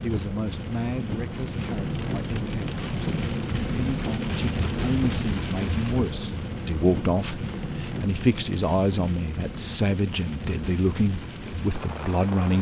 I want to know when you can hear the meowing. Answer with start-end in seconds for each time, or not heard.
not heard.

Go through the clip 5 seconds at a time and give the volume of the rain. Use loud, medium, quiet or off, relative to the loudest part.
loud, loud, medium.